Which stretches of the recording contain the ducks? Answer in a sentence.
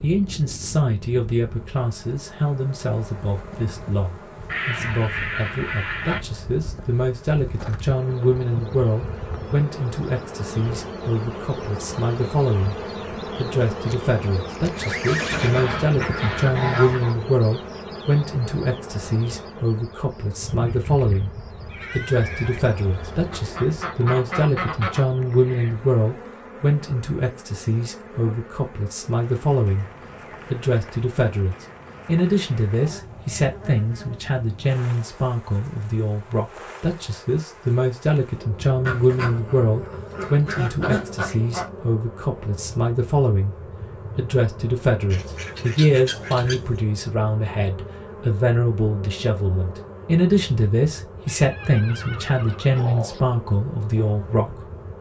You can hear the ducks from 4.5 to 6.2 s, from 15.3 to 17.1 s, from 22.1 to 25.1 s, from 38.8 to 41.6 s and from 45.1 to 46.8 s.